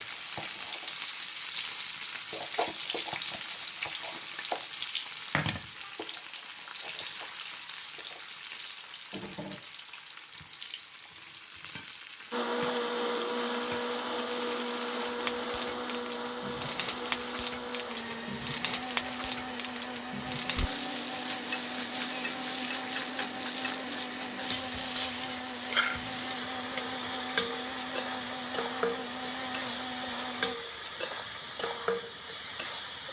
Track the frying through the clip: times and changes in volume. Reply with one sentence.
The frying can be heard from 0.0 to 33.0 s, getting quieter then louder.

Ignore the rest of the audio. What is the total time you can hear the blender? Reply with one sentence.
The blender can be heard for 18 seconds in total.